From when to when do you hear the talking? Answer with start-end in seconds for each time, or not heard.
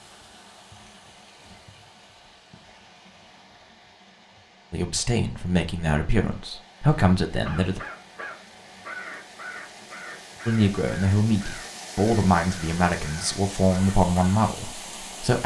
4.7-7.8, 10.4-15.4.